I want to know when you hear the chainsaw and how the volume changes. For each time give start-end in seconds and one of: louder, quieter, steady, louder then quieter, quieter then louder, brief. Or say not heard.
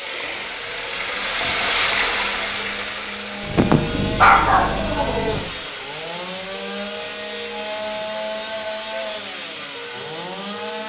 0.0-10.8 louder.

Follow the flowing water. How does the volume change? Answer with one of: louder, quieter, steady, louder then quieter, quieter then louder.
quieter.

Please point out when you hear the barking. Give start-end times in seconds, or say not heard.
3.5-5.5.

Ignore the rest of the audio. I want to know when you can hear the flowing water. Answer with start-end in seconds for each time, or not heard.
0.0-9.2.